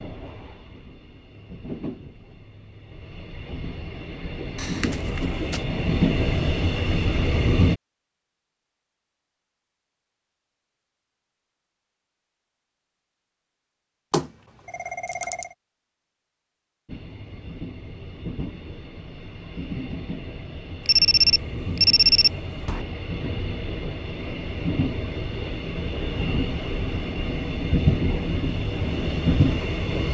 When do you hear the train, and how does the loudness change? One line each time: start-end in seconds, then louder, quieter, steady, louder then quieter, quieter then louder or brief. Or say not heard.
0.0-7.8 louder
16.9-30.0 louder.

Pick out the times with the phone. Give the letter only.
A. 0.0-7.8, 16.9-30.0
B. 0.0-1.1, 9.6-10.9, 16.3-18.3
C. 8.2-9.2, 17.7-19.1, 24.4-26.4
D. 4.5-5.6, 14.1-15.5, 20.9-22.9
D.